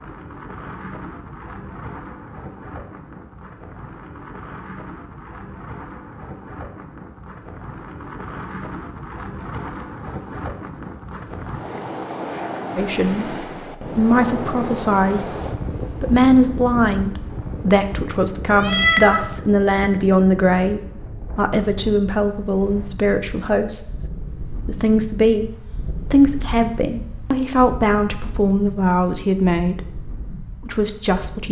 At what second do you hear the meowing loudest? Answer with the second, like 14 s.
19 s.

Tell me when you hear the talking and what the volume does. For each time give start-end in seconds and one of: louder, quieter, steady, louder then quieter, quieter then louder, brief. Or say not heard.
12.8-29.8 steady
30.6-31.4 brief.